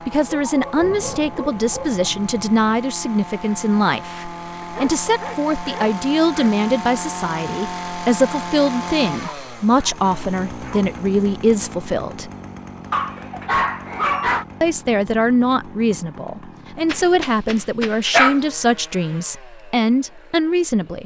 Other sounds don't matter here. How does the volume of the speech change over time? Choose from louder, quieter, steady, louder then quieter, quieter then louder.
steady.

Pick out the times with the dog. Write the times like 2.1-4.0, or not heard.
0.3-2.0, 4.6-6.5, 9.1-11.0, 12.9-14.4, 16.9-18.4.